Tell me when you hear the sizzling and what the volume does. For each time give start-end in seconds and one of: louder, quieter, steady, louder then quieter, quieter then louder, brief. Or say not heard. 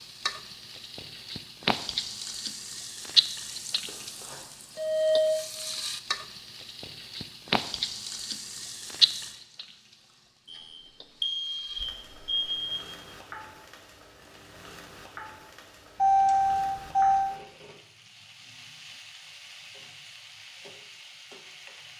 0.0-21.9 quieter.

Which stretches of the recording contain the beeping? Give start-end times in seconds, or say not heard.
3.9-5.3, 10.4-12.8, 15.9-17.4.